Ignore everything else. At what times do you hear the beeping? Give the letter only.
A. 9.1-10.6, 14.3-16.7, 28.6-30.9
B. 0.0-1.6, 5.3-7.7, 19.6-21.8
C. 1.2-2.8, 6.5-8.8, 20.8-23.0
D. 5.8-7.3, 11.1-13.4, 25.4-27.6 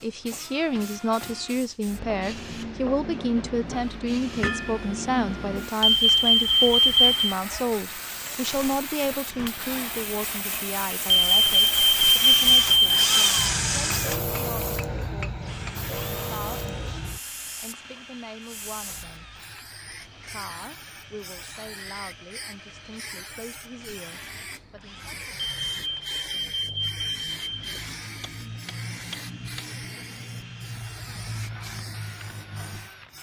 D.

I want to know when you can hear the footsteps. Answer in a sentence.
You can't hear the footsteps here.